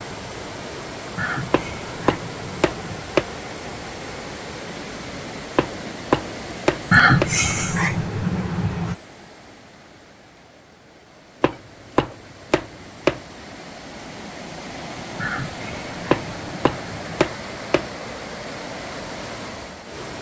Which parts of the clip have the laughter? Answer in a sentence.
You can hear the laughter from 1.1 to 3.0 s, from 6.9 to 8.9 s and from 15.2 to 17.2 s.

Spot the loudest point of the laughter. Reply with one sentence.
The loudest moment of the laughter is at 7 seconds.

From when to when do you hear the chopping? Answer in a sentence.
The chopping can be heard from 1.5 to 3.2 s, from 5.5 to 7.3 s, from 11.4 to 13.2 s and from 16.1 to 17.9 s.